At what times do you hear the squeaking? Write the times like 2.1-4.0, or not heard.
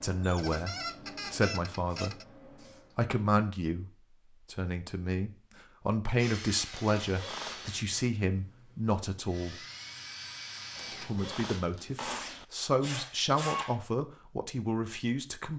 0.2-2.2, 6.7-7.8, 10.8-12.4.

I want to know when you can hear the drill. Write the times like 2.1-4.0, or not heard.
6.2-13.8.